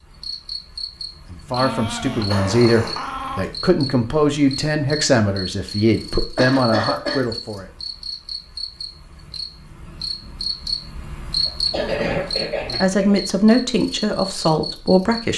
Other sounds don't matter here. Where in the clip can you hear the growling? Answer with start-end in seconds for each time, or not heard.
1.6-3.5.